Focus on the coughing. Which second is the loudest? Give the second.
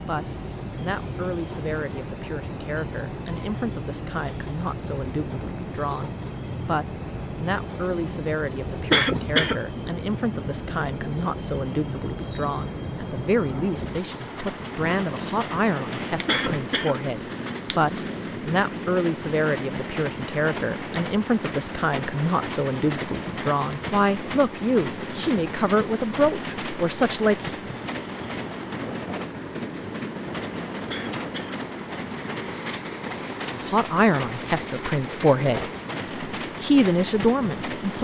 9 s.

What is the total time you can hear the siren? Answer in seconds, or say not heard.
not heard.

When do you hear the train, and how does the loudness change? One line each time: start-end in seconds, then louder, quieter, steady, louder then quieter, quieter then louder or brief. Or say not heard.
0.0-38.0 steady.